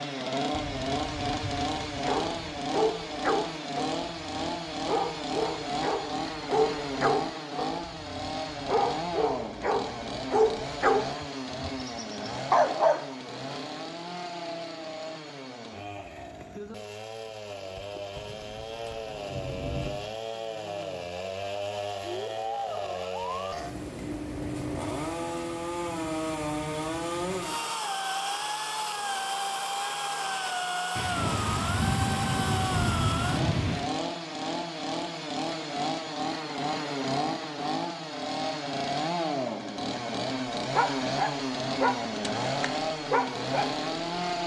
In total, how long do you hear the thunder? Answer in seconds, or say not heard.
7 s.